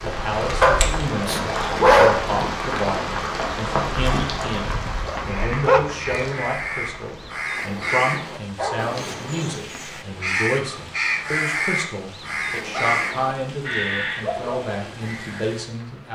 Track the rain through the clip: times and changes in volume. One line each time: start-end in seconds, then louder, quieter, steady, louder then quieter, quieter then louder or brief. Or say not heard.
0.0-16.0 quieter.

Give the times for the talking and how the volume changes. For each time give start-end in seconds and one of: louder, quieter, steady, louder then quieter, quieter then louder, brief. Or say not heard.
0.0-16.0 steady.